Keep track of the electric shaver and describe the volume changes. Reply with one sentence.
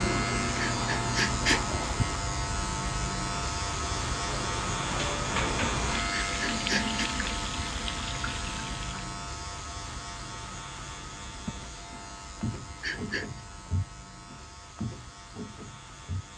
The volume of the electric shaver goes down.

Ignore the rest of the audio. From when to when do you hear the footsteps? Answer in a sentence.
You can hear the footsteps from 11.4 to 16.2 s.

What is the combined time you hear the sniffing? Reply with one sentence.
The sniffing can be heard for 3 seconds in total.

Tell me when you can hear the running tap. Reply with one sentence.
The running tap can be heard from 0.0 to 9.1 s.